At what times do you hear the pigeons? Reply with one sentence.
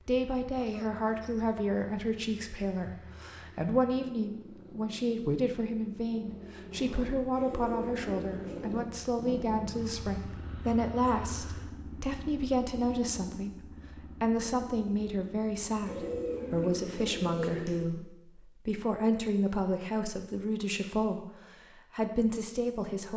You can hear the pigeons from 7.3 to 8.8 s and from 15.8 to 17.9 s.